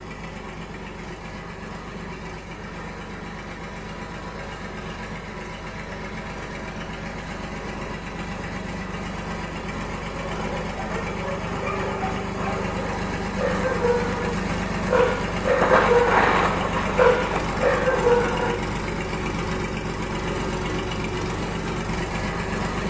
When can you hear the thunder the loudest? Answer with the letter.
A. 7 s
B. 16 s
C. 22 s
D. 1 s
B.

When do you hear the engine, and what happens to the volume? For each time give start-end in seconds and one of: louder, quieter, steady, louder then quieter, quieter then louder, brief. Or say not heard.
0.0-22.8 louder.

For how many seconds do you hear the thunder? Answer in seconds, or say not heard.
3 s.